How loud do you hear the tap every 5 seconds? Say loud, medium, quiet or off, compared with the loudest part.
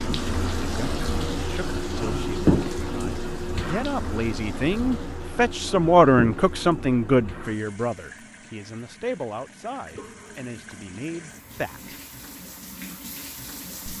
loud, medium, quiet.